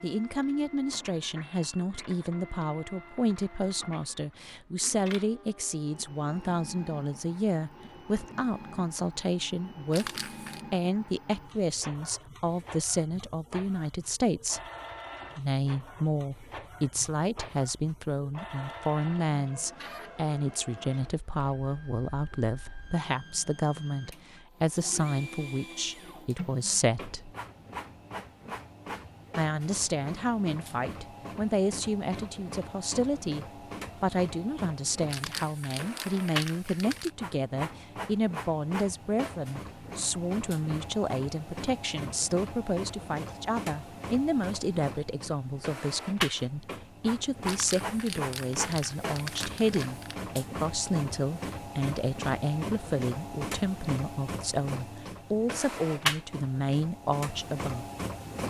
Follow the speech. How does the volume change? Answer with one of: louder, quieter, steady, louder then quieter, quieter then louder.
steady.